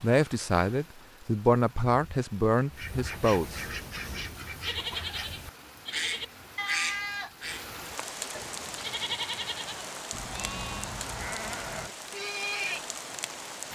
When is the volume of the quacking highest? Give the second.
7 s.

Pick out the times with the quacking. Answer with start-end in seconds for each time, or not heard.
2.6-7.7.